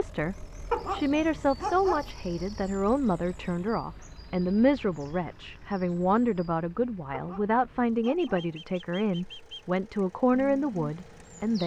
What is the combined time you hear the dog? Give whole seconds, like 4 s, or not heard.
3 s.